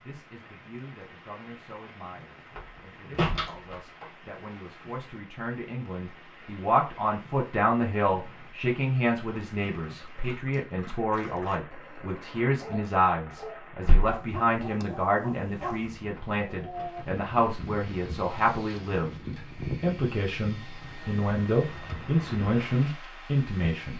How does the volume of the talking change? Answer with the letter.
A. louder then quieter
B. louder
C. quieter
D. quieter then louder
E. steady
B.